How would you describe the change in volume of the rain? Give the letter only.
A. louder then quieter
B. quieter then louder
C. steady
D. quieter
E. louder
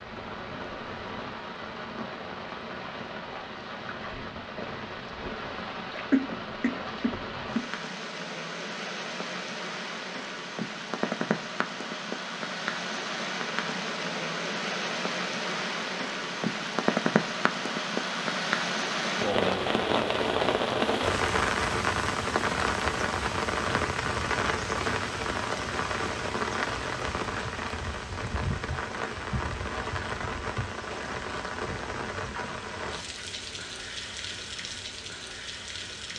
A.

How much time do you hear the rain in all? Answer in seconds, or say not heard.
36 s.